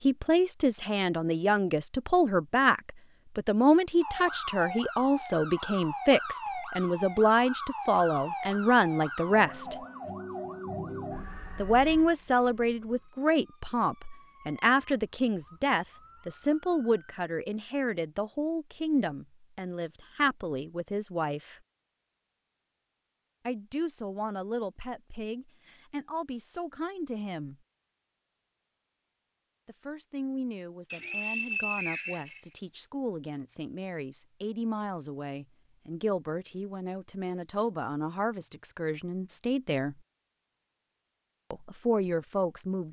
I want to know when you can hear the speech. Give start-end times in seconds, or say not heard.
0.0-9.8, 11.6-21.6, 23.4-27.6, 29.6-40.0, 41.5-42.8.